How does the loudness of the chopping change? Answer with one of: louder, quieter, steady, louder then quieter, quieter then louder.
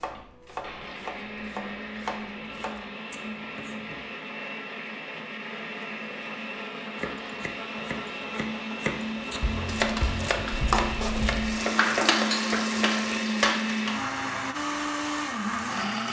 louder.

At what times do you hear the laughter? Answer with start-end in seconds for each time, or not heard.
not heard.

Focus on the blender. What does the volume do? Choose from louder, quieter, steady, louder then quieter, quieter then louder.
louder.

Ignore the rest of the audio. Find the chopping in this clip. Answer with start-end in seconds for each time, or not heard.
0.0-4.2, 7.0-13.6.